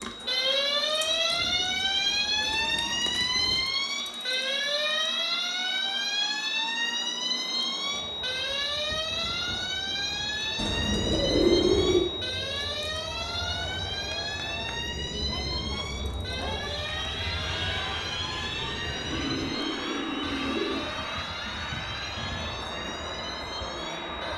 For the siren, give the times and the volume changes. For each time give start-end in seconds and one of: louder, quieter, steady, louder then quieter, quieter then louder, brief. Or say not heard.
0.0-24.3 quieter.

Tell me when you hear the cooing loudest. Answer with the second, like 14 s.
12 s.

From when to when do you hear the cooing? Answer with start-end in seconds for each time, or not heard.
1.1-3.6, 10.6-12.1, 19.1-20.9.